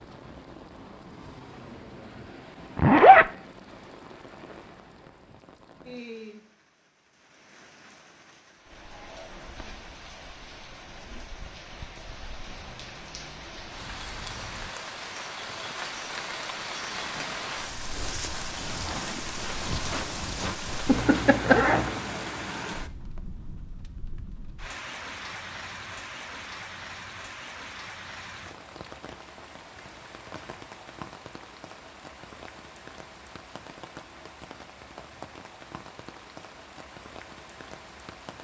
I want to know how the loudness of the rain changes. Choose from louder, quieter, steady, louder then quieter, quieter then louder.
louder then quieter.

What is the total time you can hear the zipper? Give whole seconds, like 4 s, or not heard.
2 s.